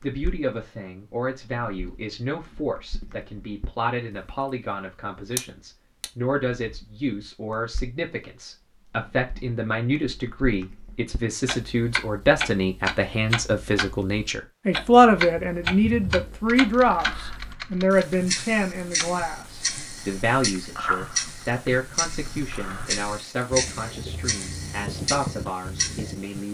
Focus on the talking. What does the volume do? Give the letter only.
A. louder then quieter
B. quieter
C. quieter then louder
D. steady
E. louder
A.